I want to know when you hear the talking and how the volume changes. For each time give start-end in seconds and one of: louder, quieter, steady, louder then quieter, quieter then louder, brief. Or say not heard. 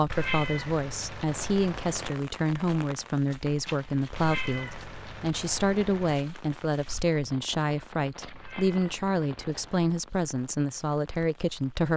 0.0-11.9 steady.